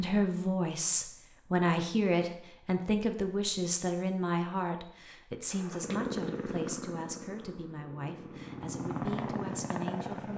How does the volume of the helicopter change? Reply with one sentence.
The loudness of the helicopter goes down, then up.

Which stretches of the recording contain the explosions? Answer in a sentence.
The explosions can't be heard in this clip.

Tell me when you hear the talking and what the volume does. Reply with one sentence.
The talking can be heard from 0.0 to 10.3 s, getting quieter.